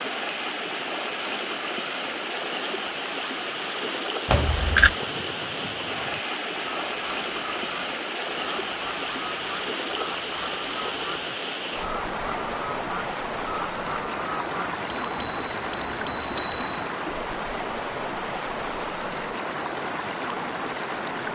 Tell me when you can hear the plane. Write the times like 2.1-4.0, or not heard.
not heard.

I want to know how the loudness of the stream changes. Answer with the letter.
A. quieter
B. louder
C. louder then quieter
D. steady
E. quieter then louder
D.